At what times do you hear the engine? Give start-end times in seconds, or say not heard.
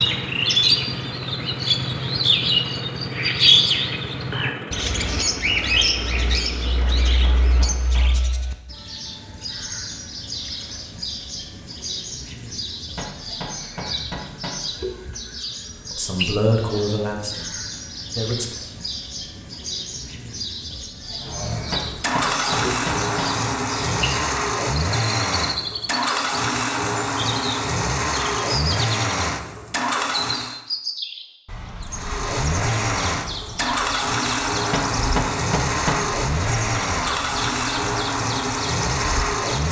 0.0-8.1, 21.1-30.6, 31.9-39.6.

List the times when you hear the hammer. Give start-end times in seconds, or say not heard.
6.8-8.2, 12.8-14.6, 21.5-23.4, 34.5-36.0.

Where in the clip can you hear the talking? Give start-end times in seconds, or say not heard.
15.9-18.5.